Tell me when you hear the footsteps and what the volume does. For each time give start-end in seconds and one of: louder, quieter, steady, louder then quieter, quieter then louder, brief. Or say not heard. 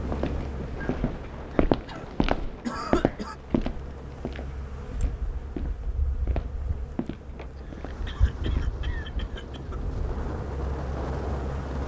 0.1-8.7 quieter.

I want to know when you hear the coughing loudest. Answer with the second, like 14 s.
3 s.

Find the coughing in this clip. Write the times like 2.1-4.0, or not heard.
1.9-3.4, 7.3-9.8.